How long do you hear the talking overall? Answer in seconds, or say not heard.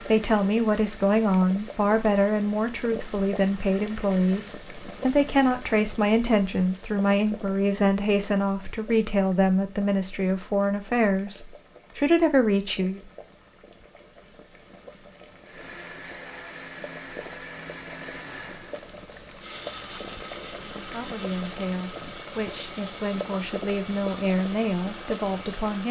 18 s.